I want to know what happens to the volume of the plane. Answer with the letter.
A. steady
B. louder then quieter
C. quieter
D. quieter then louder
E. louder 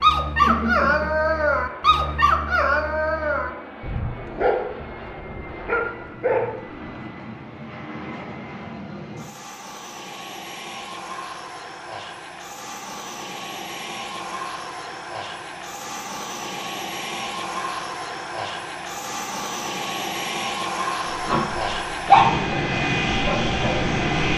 E.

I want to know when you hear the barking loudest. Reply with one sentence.
The volume of the barking peaks at 22 seconds.